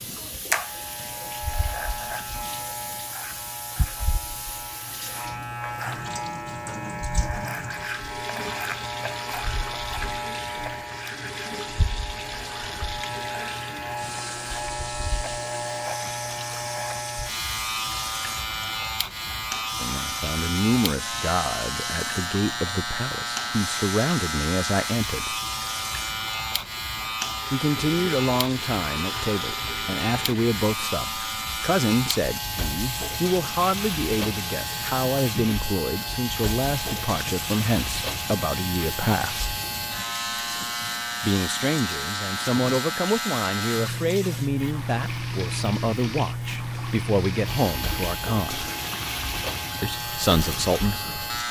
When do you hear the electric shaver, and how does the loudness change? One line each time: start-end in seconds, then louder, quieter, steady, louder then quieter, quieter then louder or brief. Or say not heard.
0.0-51.4 steady.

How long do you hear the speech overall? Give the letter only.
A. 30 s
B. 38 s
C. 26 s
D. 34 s
C.